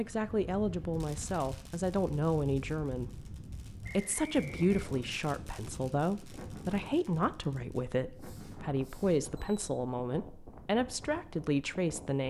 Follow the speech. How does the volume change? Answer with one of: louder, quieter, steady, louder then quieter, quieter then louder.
steady.